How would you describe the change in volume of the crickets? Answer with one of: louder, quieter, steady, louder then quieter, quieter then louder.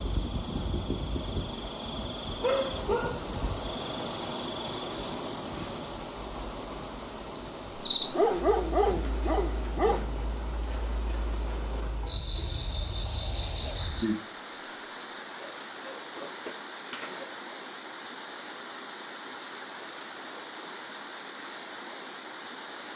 louder.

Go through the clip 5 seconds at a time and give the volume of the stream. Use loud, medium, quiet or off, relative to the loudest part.
loud, loud, medium, medium, medium.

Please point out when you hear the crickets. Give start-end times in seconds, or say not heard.
0.0-15.6.